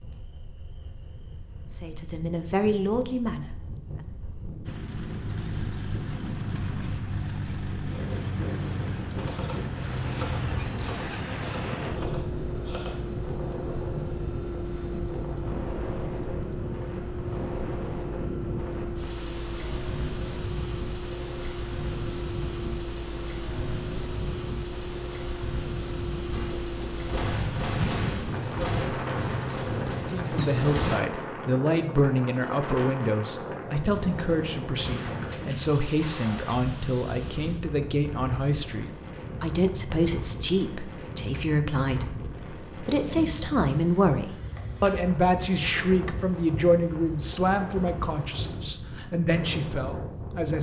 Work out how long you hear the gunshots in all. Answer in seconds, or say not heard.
10 s.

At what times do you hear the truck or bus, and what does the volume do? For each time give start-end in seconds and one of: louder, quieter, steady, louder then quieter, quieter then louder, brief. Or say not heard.
4.7-30.8 steady.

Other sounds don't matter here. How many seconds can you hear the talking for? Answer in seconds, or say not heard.
22 s.